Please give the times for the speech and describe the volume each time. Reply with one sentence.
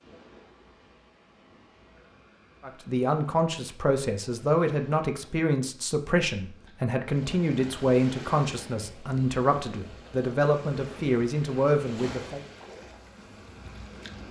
The speech can be heard from 2.6 to 12.4 s, at a steady volume.